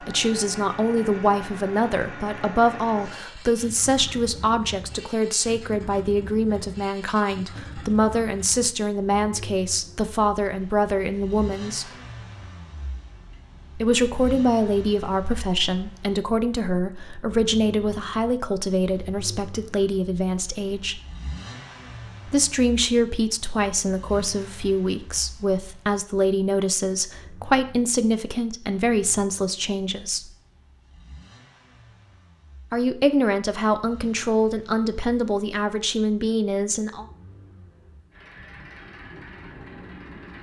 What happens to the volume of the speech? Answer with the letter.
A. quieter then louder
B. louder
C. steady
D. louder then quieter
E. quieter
C.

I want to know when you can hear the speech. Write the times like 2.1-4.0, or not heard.
0.0-11.9, 13.8-21.0, 22.2-30.3, 32.7-37.0.